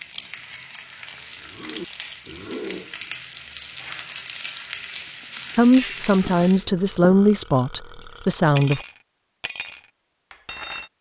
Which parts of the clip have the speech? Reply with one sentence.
The speech can be heard from 5.5 to 8.8 s.